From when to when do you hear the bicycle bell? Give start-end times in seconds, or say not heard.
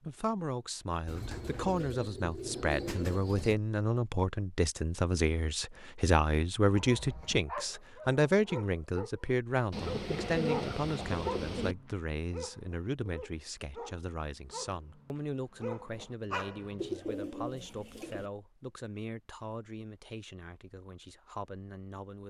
not heard.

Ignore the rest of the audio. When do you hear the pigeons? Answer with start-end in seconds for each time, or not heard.
1.1-3.5, 9.7-11.8, 16.8-18.3.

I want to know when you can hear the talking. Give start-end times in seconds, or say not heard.
0.0-22.2.